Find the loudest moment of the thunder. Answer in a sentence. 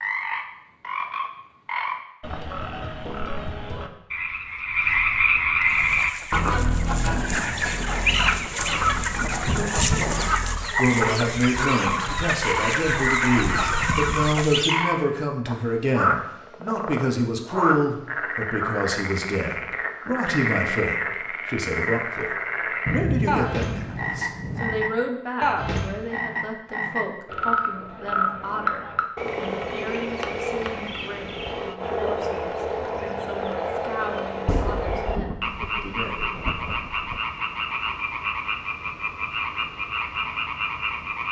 The volume of the thunder peaks at 23 seconds.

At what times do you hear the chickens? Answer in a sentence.
You can hear the chickens from 5.7 to 14.8 s.